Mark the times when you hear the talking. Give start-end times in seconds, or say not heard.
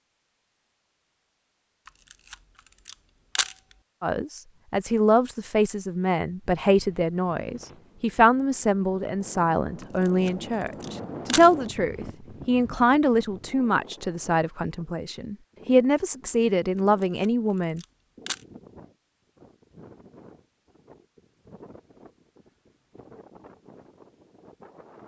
4.0-17.8.